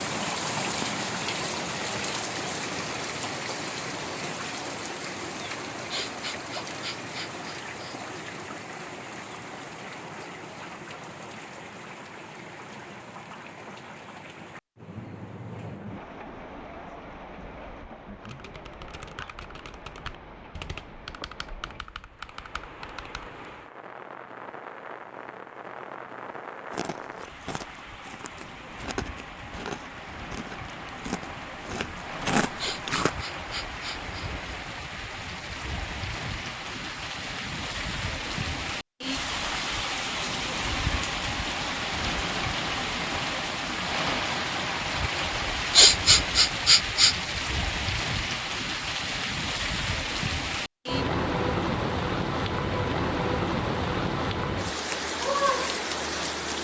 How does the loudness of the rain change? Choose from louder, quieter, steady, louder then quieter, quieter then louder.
quieter then louder.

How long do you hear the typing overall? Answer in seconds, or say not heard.
5 s.